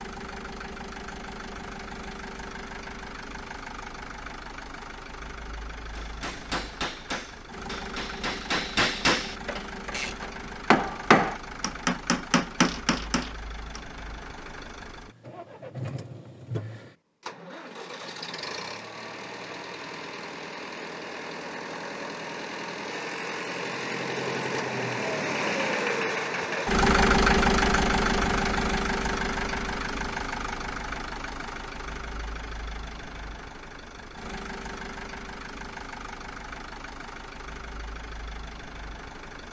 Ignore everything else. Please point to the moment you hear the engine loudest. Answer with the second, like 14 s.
27 s.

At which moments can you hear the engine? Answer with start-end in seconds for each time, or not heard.
0.0-39.4.